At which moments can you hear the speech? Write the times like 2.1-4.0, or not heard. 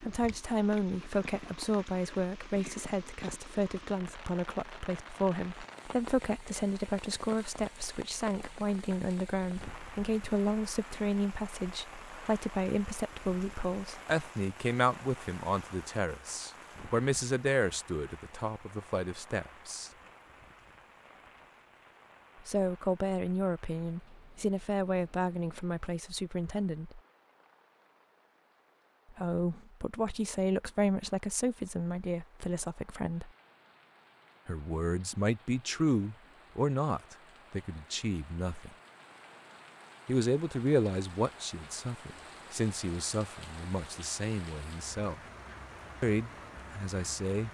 0.0-19.9, 22.4-27.0, 29.1-33.3, 34.5-38.7, 40.0-45.2, 46.0-47.4.